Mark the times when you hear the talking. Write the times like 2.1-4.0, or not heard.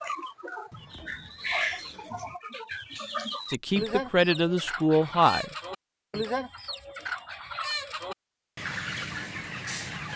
3.5-5.5.